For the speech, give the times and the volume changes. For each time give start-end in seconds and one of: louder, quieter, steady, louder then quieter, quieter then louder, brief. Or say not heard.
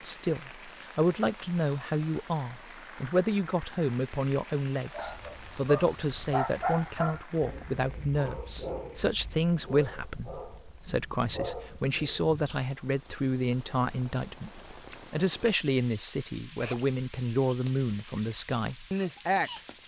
0.0-19.8 steady.